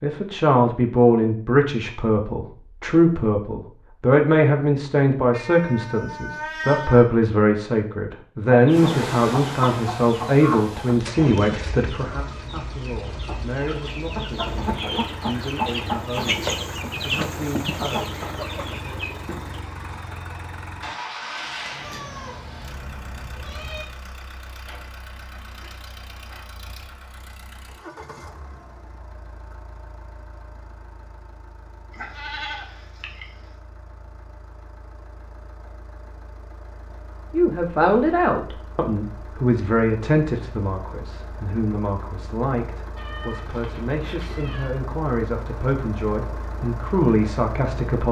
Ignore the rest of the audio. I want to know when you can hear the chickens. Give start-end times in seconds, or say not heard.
8.4-19.6.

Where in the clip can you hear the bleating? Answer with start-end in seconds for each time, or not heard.
31.9-33.5.